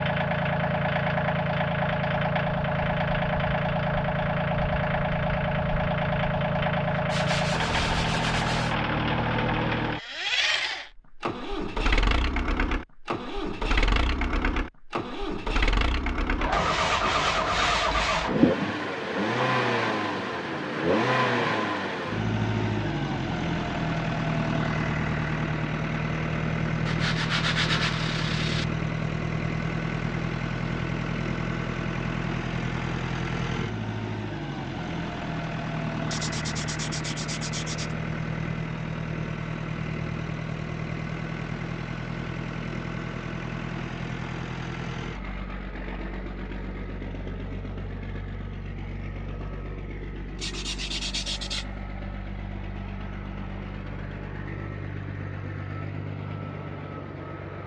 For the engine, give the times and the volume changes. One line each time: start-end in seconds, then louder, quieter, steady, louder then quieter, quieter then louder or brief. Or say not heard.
0.0-57.6 quieter.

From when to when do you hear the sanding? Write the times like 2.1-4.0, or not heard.
7.0-8.8, 16.5-18.3, 26.9-28.6, 36.1-38.0, 50.4-51.6.